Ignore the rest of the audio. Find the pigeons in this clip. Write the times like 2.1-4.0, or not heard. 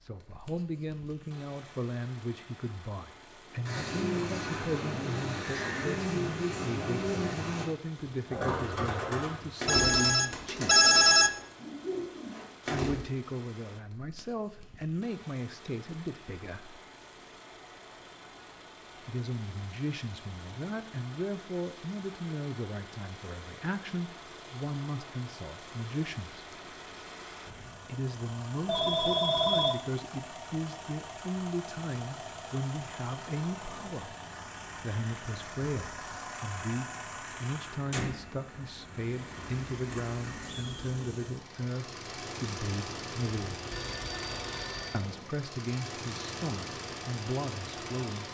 3.6-13.1.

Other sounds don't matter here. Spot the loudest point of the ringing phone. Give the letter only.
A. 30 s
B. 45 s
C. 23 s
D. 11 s
D.